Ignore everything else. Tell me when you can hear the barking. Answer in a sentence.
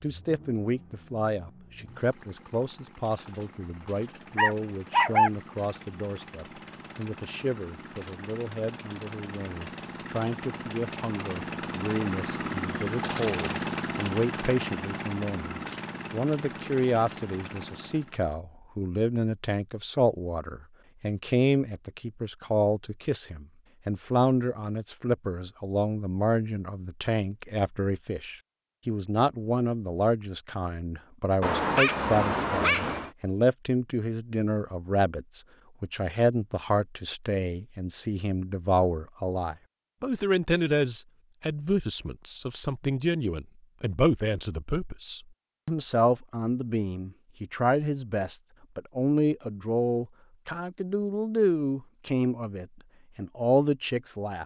The barking can be heard from 4.3 to 5.3 s and from 31.4 to 33.1 s.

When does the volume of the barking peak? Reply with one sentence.
The loudest moment of the barking is at 5 seconds.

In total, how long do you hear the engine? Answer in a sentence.
The engine can be heard for 18 seconds in total.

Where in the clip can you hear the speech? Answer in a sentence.
You can hear the speech from 0.0 to 54.4 s.